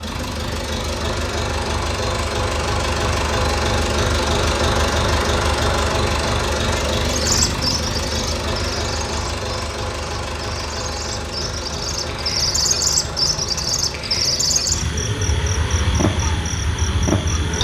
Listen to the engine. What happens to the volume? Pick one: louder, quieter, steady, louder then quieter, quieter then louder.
quieter.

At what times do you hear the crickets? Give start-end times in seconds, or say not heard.
7.0-17.5.